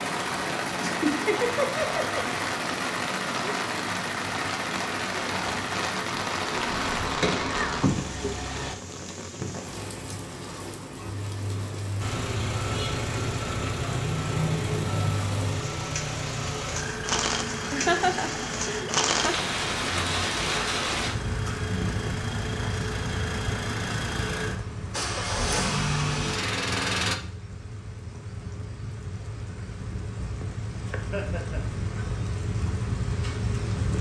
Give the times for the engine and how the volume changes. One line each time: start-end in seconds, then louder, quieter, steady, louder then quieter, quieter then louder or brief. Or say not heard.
0.0-8.8 steady
12.0-27.2 quieter then louder.